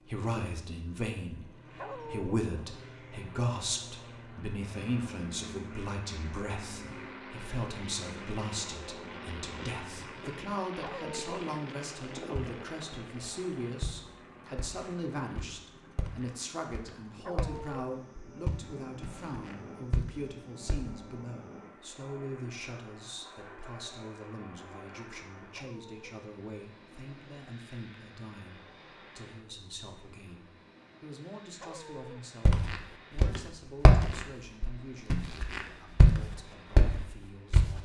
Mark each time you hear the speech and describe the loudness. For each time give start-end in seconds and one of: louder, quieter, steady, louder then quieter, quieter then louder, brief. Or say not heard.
0.1-37.8 quieter.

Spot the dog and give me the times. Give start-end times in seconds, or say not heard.
1.8-2.3, 10.8-11.4, 17.2-17.8, 25.5-26.1, 31.6-32.2.